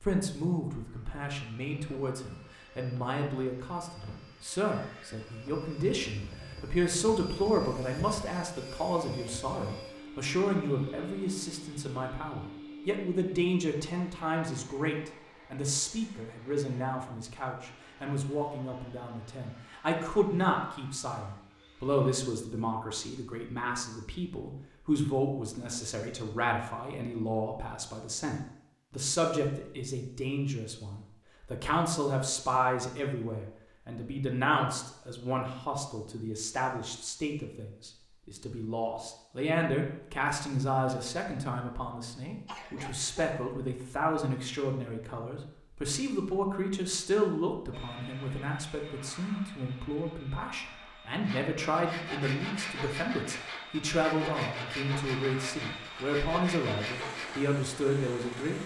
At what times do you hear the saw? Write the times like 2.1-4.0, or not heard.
51.2-57.4.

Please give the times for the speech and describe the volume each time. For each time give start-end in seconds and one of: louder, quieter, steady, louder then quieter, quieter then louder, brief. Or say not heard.
0.0-58.6 steady.